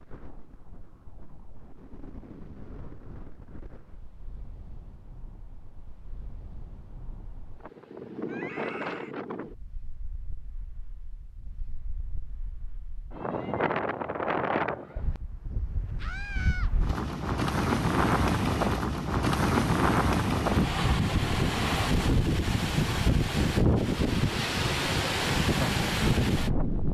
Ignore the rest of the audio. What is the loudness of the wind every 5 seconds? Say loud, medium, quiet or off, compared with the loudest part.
quiet, quiet, medium, loud, loud, loud.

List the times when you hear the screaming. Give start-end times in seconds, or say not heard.
8.2-9.2, 15.9-16.7.